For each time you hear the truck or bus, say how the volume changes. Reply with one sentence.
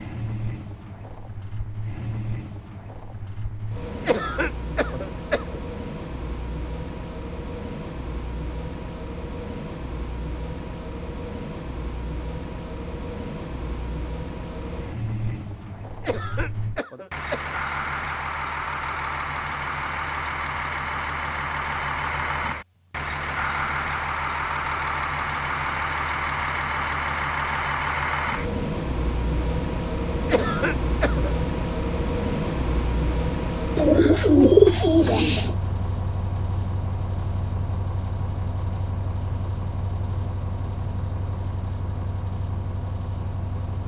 You can hear the truck or bus from 0.0 to 43.8 s, getting louder then quieter.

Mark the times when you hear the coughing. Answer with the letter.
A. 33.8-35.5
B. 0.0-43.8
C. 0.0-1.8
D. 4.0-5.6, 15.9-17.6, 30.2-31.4
D.